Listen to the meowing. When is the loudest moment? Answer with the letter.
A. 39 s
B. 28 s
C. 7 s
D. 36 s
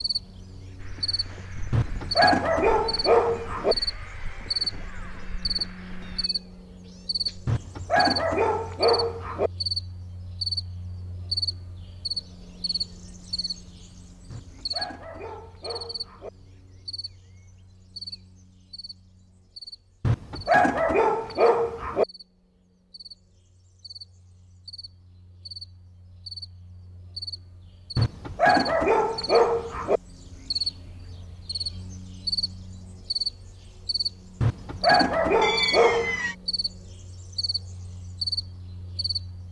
D.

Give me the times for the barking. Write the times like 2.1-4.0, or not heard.
1.7-3.8, 7.5-9.5, 14.3-16.3, 20.0-22.1, 27.9-30.0, 34.4-36.2.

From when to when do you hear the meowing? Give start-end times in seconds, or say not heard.
6.0-7.6, 35.4-36.4.